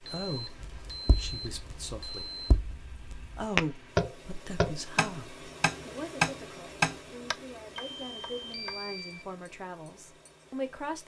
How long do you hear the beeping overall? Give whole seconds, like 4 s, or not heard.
4 s.